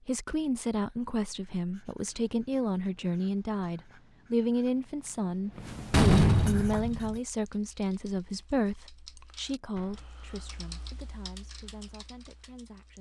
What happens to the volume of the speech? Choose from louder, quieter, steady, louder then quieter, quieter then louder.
quieter.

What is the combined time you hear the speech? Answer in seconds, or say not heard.
13 s.